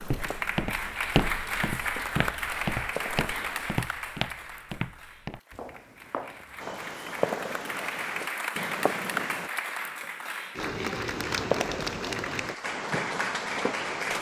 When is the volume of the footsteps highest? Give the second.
1 s.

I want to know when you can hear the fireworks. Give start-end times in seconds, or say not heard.
0.0-3.7, 6.6-9.5, 11.2-14.1.